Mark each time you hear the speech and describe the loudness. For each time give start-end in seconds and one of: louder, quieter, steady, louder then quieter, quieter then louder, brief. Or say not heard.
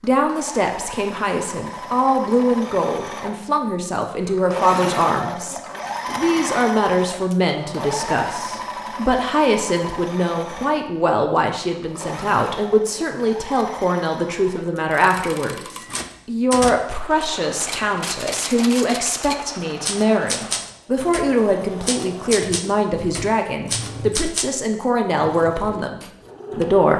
0.0-26.9 steady.